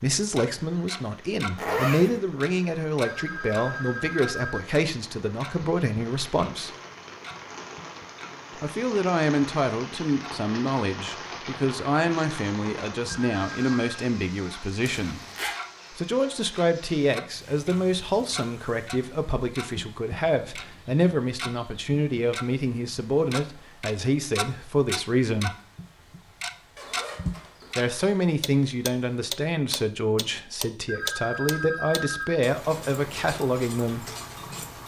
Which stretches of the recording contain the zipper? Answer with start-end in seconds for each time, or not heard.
1.6-2.2, 14.8-15.6, 26.8-27.9.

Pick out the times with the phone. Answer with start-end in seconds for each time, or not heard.
3.0-4.6, 13.1-14.1, 30.9-32.4.